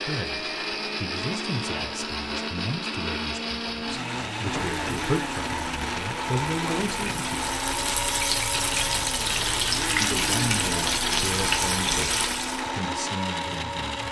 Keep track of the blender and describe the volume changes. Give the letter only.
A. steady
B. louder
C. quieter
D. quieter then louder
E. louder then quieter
A.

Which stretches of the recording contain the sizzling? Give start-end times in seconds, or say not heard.
4.4-12.7.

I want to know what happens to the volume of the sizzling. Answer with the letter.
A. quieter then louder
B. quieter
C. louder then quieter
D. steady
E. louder
E.